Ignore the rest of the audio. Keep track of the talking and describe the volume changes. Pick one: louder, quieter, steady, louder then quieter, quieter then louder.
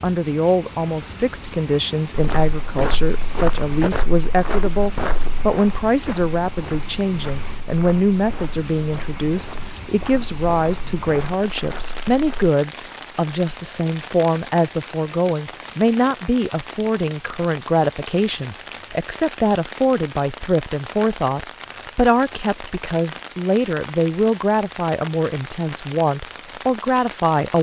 steady.